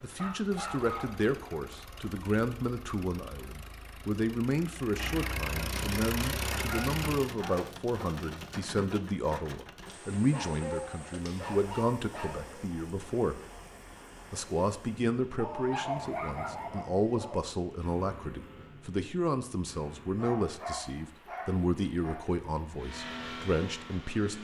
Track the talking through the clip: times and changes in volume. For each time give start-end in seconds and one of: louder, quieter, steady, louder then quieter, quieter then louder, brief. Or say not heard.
0.0-13.4 steady
14.3-24.3 steady.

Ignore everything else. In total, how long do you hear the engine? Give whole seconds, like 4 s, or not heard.
9 s.